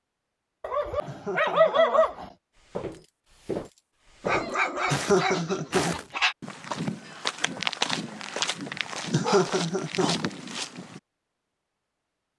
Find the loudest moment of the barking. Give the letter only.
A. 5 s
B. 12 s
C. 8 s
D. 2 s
D.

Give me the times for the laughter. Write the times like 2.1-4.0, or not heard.
1.1-1.8, 4.9-6.0, 9.1-10.2.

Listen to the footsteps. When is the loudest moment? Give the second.
8 s.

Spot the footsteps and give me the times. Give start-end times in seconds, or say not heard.
2.5-11.0.